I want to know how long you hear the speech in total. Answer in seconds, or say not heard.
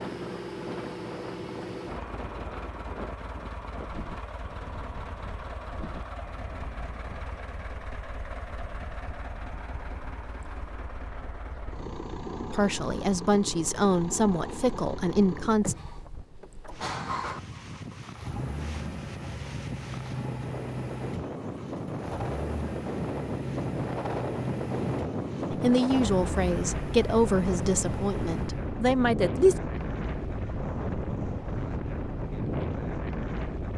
7 s.